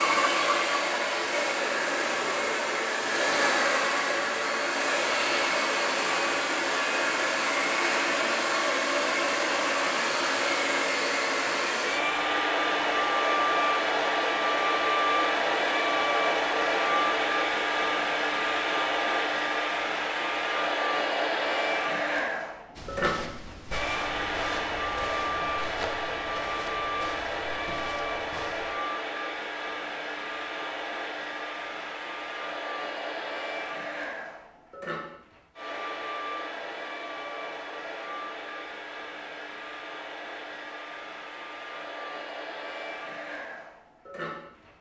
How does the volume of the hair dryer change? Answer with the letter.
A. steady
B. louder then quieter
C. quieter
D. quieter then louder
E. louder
C.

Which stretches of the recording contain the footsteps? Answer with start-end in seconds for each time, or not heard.
22.8-28.8.